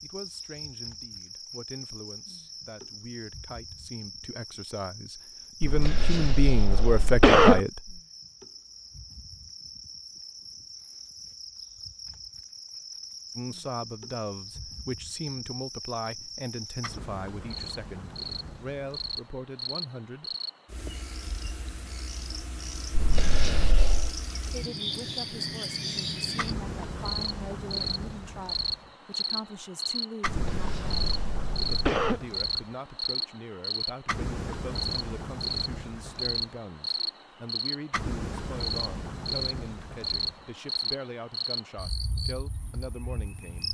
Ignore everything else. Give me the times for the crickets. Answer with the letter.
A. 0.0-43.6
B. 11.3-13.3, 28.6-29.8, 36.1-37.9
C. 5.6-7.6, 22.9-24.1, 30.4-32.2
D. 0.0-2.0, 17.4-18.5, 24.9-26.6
A.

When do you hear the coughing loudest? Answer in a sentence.
The loudest moment of the coughing is at 7 seconds.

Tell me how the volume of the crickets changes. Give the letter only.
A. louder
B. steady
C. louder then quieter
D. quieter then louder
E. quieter
A.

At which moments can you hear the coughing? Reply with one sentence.
The coughing can be heard from 5.6 to 7.6 s, from 22.9 to 24.1 s and from 30.4 to 32.2 s.